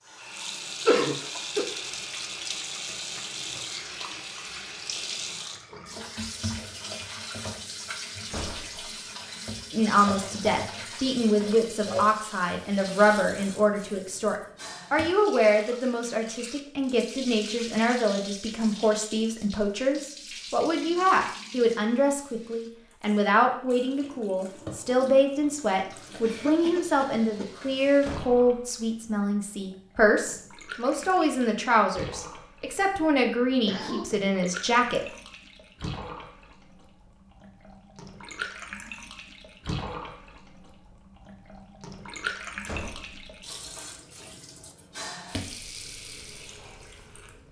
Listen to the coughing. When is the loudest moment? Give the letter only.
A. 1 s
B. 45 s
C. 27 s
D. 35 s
A.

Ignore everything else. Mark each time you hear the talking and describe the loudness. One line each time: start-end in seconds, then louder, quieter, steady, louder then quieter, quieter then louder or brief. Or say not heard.
9.7-35.0 steady.